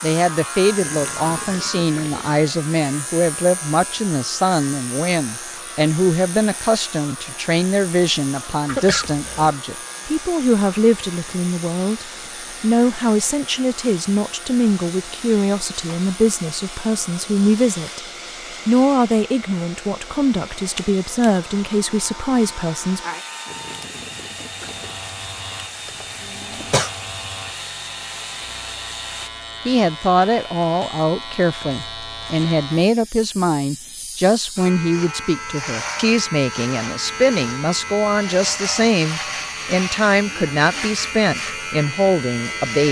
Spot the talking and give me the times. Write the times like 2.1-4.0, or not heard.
0.0-18.0, 18.6-23.0, 29.6-42.8.